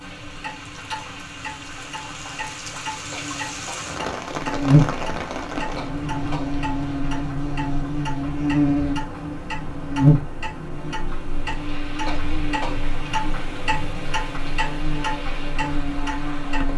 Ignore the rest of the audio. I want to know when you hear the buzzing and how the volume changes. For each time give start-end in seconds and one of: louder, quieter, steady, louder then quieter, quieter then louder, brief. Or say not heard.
0.0-16.7 louder then quieter.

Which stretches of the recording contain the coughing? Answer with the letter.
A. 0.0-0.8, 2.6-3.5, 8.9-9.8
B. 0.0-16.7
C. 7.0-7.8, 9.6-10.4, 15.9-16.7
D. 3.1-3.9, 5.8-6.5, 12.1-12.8
D.